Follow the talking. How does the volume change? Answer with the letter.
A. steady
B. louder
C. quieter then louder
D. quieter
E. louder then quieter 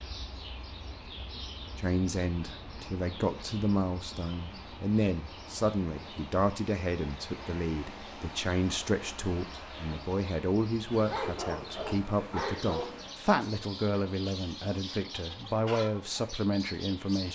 A.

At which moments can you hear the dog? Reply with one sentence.
You can hear the dog from 10.9 to 13.2 s.